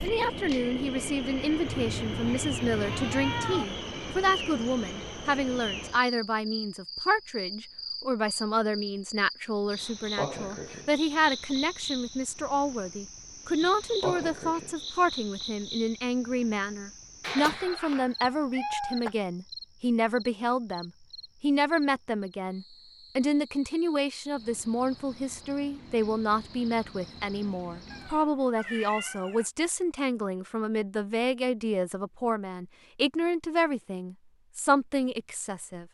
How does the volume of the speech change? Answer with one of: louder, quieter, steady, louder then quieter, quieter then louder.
steady.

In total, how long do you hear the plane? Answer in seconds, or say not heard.
not heard.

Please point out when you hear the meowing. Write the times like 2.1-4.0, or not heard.
1.6-3.6, 17.2-19.1, 27.9-29.5.